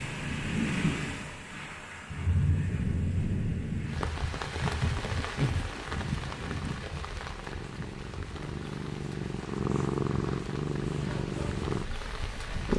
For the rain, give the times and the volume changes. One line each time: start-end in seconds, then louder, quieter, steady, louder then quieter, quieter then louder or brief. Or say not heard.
0.0-12.7 quieter.